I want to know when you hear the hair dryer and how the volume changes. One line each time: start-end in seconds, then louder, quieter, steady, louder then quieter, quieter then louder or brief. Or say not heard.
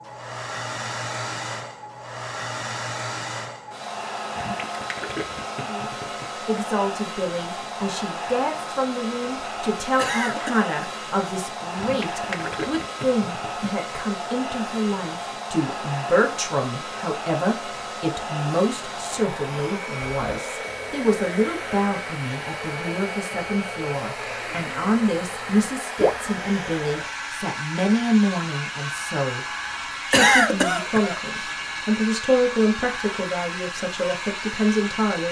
0.0-35.2 steady.